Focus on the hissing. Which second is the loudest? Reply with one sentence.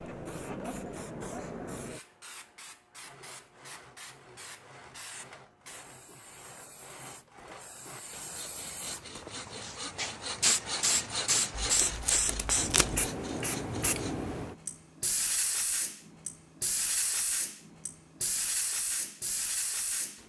The volume of the hissing peaks at 11 seconds.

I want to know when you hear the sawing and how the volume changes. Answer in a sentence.
You can hear the sawing from 2.9 to 14.2 s, getting louder.